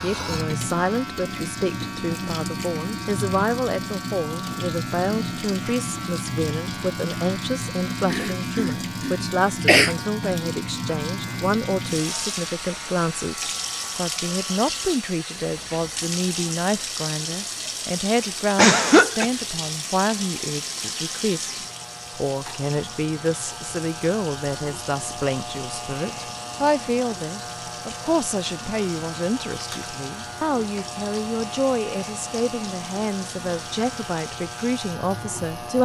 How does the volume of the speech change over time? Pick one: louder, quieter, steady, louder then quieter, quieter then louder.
steady.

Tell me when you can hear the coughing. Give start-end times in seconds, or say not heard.
8.1-9.9, 18.6-19.2.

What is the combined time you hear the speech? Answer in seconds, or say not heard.
36 s.